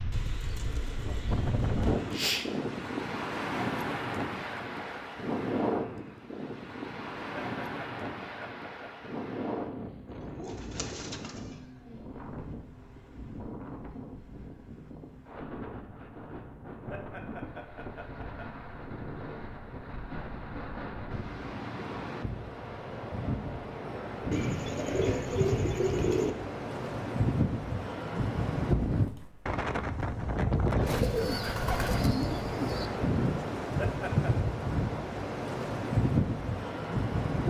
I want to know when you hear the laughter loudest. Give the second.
34 s.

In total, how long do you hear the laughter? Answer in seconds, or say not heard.
4 s.